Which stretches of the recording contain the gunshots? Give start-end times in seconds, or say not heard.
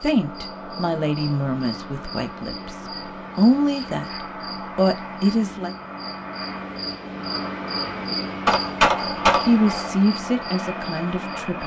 8.4-9.9.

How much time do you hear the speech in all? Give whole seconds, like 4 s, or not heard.
7 s.